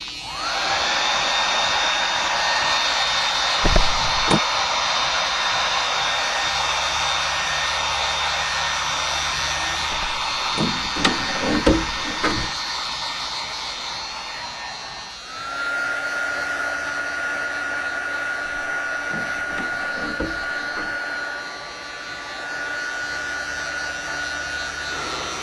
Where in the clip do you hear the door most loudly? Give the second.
12 s.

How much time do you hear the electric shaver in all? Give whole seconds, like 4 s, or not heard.
25 s.